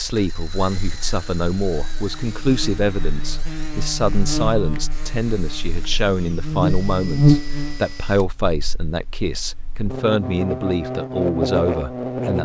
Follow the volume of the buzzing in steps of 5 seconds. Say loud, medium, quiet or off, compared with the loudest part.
medium, loud, loud.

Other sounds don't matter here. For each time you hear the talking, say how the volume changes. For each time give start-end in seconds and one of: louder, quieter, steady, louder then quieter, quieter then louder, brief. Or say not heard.
0.0-12.4 steady.